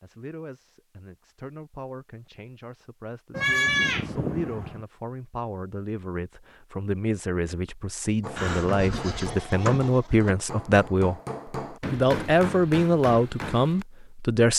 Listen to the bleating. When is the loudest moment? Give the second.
4 s.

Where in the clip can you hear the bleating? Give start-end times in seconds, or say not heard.
3.3-4.8, 8.3-10.3.